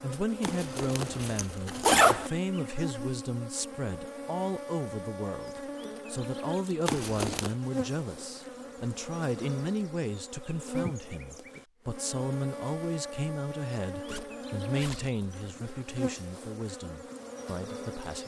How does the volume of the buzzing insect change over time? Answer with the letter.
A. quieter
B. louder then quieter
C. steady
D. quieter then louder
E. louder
C.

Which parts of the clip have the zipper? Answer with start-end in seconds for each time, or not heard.
0.4-2.3, 6.8-7.5, 14.1-15.9.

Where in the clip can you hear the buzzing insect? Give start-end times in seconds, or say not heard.
0.0-18.2.